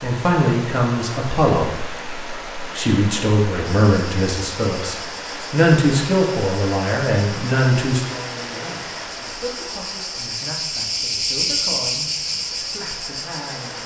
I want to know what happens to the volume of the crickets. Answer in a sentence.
The loudness of the crickets goes up.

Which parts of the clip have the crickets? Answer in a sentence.
The crickets can be heard from 3.6 to 13.8 s.